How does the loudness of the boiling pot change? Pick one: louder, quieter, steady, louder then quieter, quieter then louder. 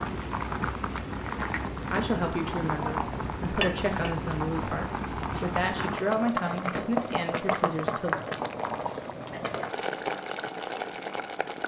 steady.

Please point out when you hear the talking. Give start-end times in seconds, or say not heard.
1.9-8.2.